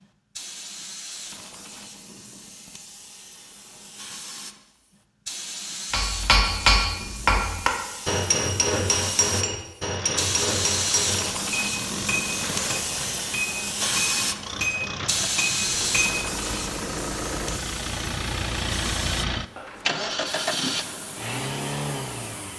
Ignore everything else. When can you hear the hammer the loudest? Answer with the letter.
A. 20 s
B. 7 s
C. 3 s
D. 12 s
B.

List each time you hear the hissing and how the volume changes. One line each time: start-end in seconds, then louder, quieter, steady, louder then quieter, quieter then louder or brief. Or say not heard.
0.0-22.5 louder then quieter.